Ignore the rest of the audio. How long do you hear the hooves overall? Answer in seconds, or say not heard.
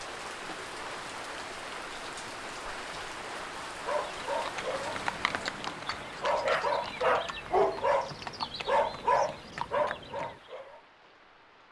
6 s.